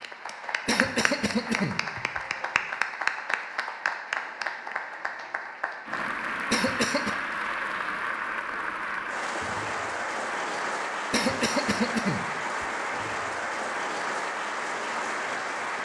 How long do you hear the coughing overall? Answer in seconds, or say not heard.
4 s.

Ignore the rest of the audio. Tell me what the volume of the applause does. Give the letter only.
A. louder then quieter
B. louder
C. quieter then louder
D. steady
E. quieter
D.